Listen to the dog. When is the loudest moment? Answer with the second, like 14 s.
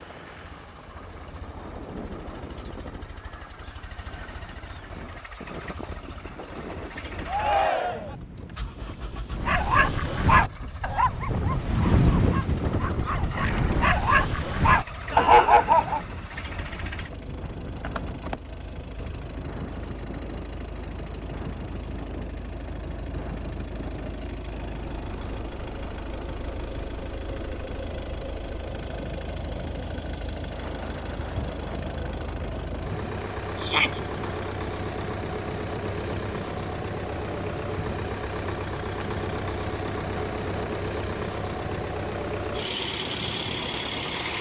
15 s.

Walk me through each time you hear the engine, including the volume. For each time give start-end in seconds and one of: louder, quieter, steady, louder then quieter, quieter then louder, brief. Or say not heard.
0.0-44.3 louder.